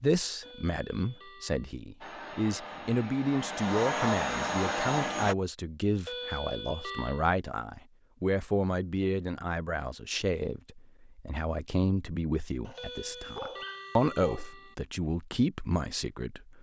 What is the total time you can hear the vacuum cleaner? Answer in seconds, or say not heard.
3 s.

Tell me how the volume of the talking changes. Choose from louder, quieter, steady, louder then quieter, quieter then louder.
steady.